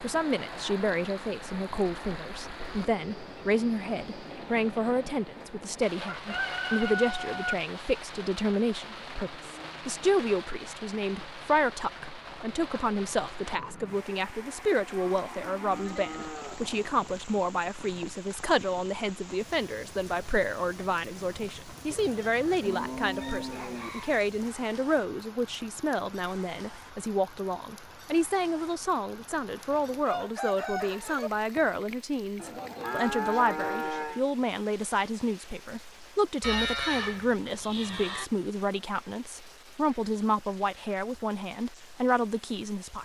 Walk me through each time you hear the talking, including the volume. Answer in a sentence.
You can hear the talking from 0.0 to 43.0 s, at a steady volume.